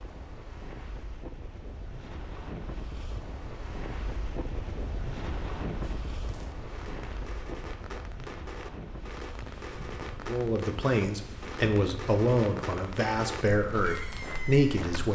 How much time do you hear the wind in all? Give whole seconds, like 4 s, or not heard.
15 s.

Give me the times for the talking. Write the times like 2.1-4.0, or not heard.
10.2-15.0.